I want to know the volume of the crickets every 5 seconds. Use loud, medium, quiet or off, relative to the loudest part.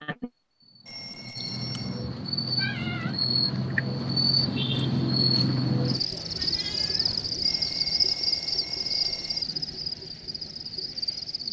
loud, loud, medium.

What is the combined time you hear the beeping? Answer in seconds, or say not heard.
3 s.